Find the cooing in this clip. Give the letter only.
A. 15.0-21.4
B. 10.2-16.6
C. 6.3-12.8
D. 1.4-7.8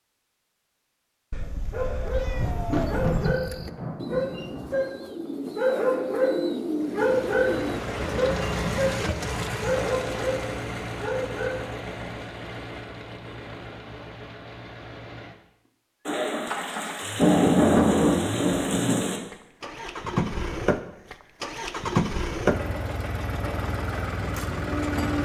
D.